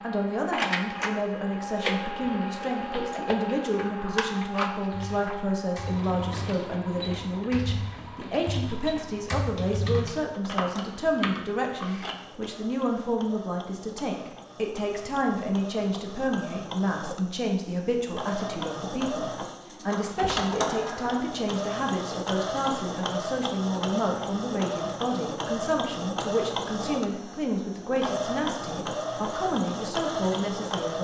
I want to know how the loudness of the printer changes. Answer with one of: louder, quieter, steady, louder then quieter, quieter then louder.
quieter then louder.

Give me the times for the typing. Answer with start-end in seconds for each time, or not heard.
4.9-12.2.